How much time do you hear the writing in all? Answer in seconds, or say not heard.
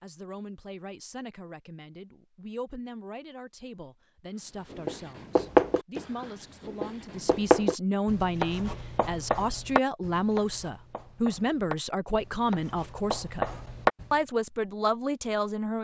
9 s.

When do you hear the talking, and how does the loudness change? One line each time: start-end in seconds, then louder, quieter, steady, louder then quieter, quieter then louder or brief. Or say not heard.
0.0-13.5 louder
14.1-15.8 brief.